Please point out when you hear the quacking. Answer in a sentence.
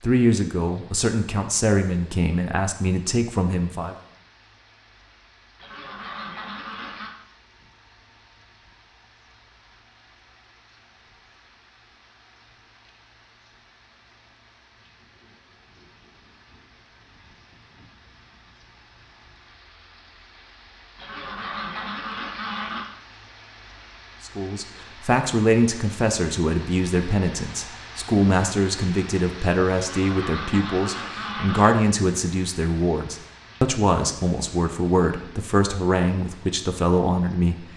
You can hear the quacking from 5.5 to 7.2 s, from 20.9 to 22.9 s and from 29.8 to 31.8 s.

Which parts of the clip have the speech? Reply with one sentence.
You can hear the speech from 0.0 to 4.0 s and from 24.2 to 37.6 s.